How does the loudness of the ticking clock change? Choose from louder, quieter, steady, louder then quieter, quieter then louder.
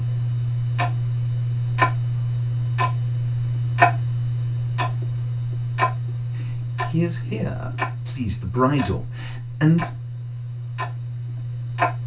quieter.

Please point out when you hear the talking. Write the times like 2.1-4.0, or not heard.
6.5-9.9.